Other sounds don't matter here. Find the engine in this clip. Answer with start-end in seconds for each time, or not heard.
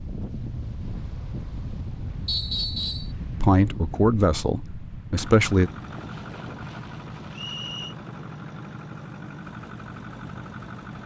5.2-11.0.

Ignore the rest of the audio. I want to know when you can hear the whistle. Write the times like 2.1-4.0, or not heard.
2.2-3.1, 7.3-8.0.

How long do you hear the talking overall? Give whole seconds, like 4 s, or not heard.
2 s.